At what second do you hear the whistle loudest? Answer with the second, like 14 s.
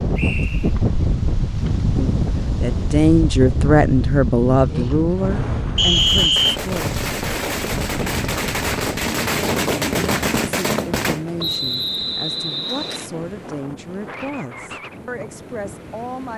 6 s.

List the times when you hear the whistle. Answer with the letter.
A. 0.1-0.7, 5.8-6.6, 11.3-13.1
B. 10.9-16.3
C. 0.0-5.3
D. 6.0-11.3
A.